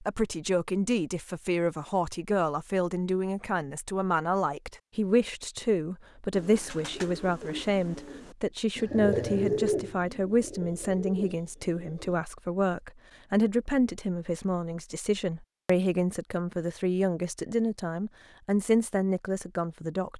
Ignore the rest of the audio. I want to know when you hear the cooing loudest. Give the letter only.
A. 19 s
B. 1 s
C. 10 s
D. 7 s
C.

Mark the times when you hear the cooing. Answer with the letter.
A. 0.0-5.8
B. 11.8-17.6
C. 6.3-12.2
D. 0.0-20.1
C.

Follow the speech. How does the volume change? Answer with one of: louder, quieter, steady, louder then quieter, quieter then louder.
steady.